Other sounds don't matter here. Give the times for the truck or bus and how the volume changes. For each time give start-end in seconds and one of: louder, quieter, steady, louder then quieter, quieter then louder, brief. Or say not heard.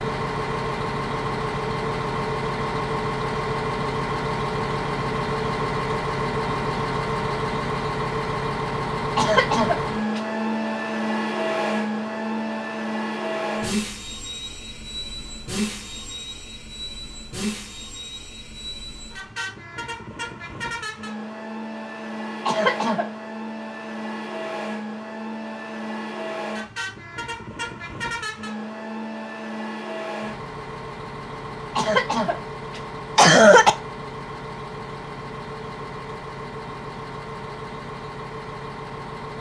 0.0-39.3 quieter.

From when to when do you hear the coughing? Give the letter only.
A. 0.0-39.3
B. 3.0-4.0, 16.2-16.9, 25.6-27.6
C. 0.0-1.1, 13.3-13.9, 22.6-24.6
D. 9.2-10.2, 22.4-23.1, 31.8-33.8
D.